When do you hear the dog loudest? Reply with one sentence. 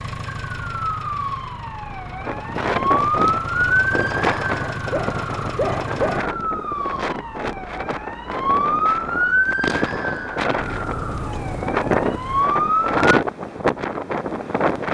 The volume of the dog peaks at 6 seconds.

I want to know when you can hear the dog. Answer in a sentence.
You can hear the dog from 4.7 to 6.3 s.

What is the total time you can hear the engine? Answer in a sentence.
The engine can be heard for 8 seconds in total.